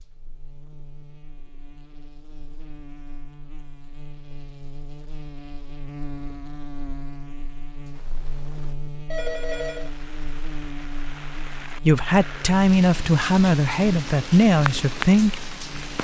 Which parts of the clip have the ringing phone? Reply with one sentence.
You can hear the ringing phone from 9.1 to 9.9 s.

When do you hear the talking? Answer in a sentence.
You can hear the talking from 11.7 to 15.4 s.